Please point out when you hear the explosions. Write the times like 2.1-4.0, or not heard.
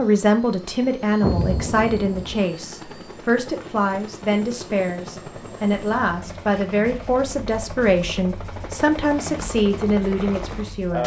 1.2-2.4.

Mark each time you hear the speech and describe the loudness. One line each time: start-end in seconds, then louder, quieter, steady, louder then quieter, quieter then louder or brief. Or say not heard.
0.0-11.0 steady.